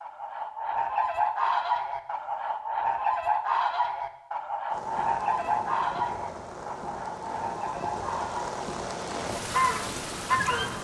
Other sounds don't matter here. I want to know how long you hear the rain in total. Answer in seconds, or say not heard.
6 s.